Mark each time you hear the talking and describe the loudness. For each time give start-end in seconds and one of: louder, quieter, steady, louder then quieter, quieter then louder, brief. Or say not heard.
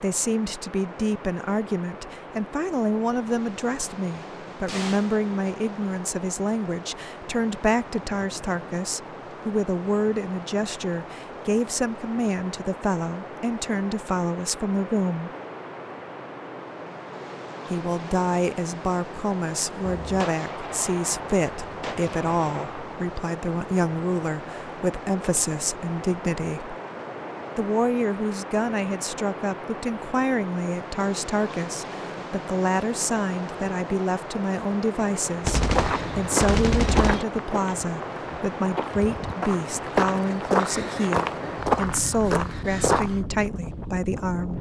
0.0-15.3 steady
17.7-26.8 steady
27.6-44.5 steady.